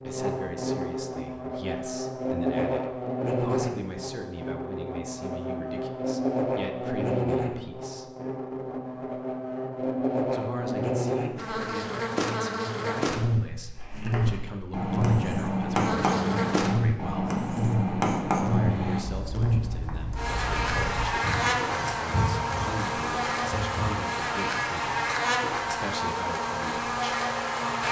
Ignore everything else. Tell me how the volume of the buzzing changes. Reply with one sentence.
The volume of the buzzing stays about the same.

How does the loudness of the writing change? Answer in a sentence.
The loudness of the writing goes down.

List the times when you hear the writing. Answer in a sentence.
The writing can be heard from 13.6 to 24.0 s.